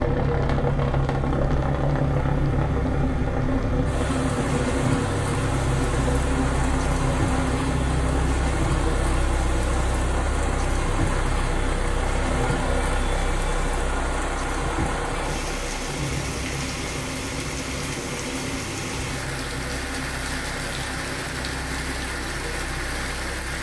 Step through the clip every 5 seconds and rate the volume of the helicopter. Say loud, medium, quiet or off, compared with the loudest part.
loud, loud, medium, medium, quiet.